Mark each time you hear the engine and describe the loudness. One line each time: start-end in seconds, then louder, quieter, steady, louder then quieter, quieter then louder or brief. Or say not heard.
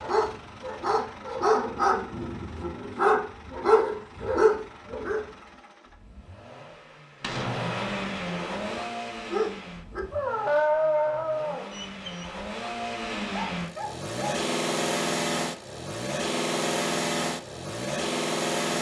0.0-18.7 louder.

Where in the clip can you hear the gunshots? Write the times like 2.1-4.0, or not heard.
7.2-8.8.